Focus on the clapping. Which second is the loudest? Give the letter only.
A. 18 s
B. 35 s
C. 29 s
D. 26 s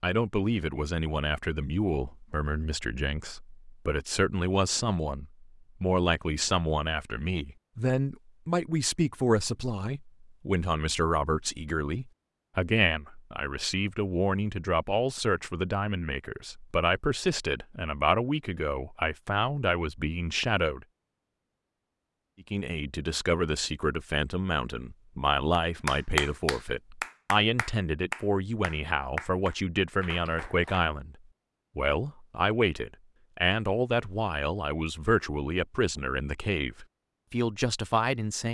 D.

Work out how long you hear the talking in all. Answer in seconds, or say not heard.
36 s.